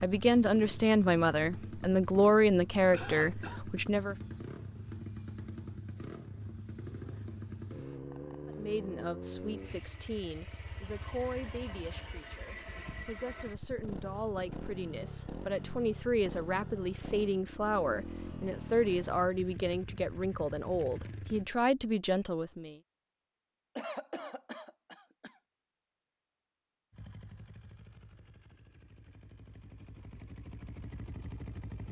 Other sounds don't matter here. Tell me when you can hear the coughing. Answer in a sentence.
You can hear the coughing from 2.9 to 3.6 s and from 23.8 to 25.4 s.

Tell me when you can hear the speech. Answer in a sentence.
The speech can be heard from 0.0 to 4.2 s and from 8.6 to 22.8 s.